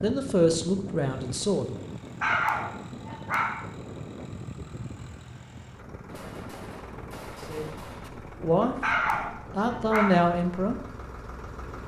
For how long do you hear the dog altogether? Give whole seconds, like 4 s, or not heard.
3 s.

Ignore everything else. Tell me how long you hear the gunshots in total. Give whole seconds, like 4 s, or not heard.
2 s.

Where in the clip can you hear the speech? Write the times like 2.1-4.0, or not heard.
0.0-1.8, 7.3-7.8, 8.3-10.8.